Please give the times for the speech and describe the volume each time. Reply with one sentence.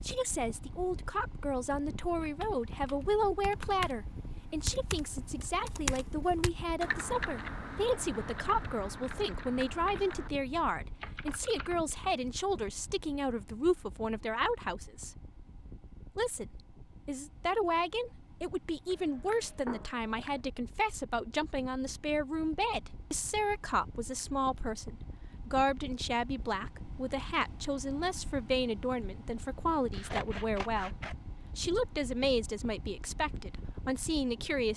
The speech can be heard from 0.0 to 15.2 s, at a steady volume; and from 16.1 to 34.7 s, at a steady volume.